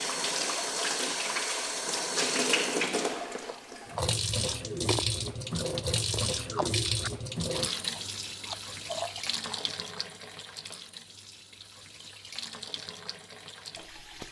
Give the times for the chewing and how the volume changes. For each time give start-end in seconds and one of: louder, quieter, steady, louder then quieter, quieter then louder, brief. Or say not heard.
3.4-9.8 quieter then louder.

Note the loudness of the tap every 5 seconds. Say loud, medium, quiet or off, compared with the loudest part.
loud, loud, quiet.